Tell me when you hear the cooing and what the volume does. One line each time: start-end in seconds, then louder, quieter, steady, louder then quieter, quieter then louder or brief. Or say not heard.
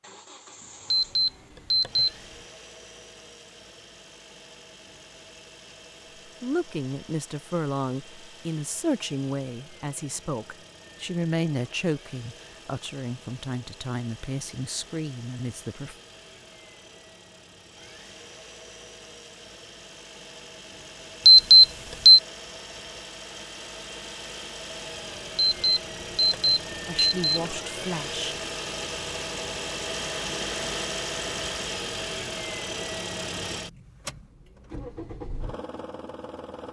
not heard.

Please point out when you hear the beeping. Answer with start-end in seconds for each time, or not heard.
0.9-2.1, 21.2-22.2, 25.4-27.4.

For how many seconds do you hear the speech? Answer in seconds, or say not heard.
11 s.